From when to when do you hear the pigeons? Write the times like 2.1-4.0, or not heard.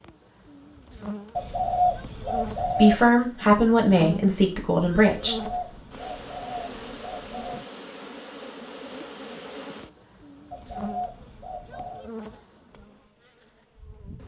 1.4-3.0, 5.2-7.6, 10.5-12.0.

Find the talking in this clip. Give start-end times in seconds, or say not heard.
2.6-5.5.